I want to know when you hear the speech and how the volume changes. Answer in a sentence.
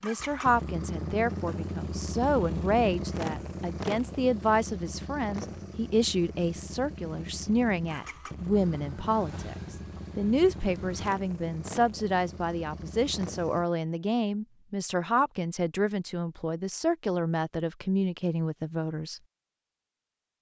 You can hear the speech from 0.0 to 19.2 s, at a steady volume.